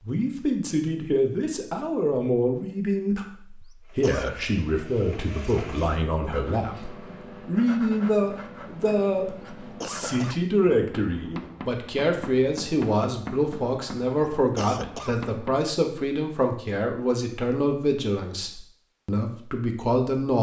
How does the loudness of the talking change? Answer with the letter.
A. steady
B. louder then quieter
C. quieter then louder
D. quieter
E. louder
A.